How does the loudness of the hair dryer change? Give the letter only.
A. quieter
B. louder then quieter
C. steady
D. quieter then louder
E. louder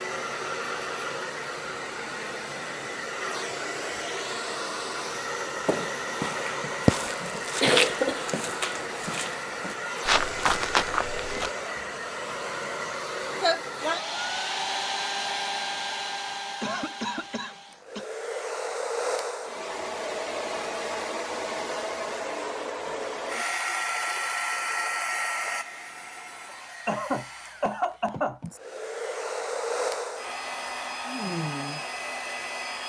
C.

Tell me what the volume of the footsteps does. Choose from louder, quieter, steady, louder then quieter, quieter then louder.
quieter then louder.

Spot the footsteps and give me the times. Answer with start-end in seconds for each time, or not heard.
5.7-11.5.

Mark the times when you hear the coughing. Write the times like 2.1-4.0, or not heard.
6.6-8.3, 16.6-18.1, 26.9-28.4.